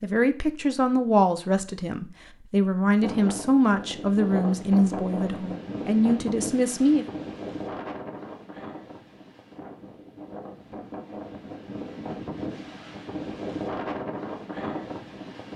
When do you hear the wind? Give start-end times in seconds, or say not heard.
3.0-15.5.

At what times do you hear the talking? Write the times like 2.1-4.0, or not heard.
0.0-7.0.